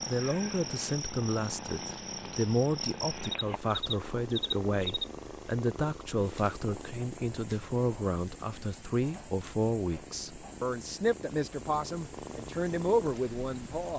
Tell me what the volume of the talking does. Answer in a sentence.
The loudness of the talking stays about the same.